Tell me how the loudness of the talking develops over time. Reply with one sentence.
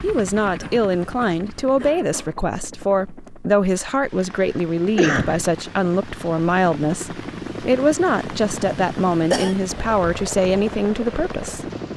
The loudness of the talking stays about the same.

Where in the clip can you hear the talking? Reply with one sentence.
You can hear the talking from 0.0 to 11.9 s.